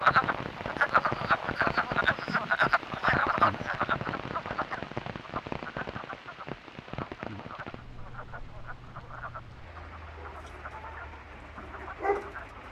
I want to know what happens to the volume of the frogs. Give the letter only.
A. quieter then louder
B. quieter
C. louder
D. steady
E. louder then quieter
B.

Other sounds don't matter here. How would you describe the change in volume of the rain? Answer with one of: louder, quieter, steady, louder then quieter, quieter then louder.
quieter.